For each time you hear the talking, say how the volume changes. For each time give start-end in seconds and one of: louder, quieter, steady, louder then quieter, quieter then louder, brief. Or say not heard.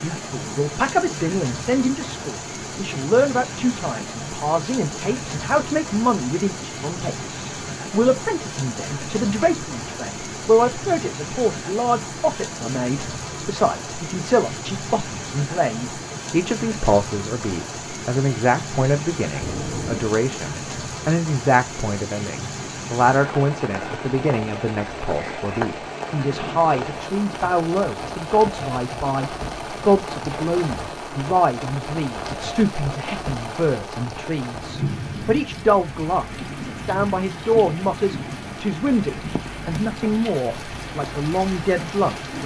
0.0-42.4 steady.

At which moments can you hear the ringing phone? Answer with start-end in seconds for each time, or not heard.
19.4-20.1.